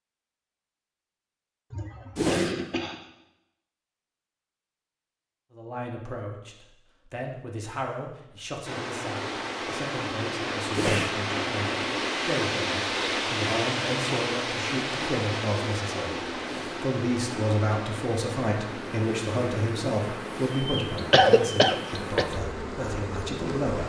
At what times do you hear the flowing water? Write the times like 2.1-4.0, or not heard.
8.7-23.8.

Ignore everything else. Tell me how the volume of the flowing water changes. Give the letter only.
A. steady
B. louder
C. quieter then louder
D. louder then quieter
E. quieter
E.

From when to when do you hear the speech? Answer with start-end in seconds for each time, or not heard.
5.5-23.8.